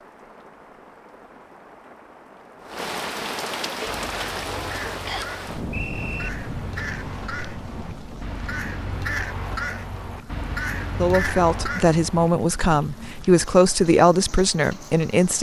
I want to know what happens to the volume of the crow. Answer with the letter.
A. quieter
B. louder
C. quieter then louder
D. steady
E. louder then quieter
B.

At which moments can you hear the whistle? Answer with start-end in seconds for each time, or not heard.
5.0-6.3.